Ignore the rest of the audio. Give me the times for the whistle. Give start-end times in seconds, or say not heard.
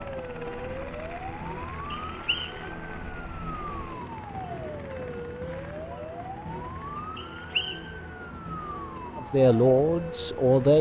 1.9-2.6, 7.2-7.9.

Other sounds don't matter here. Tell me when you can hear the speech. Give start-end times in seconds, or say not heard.
9.2-10.7.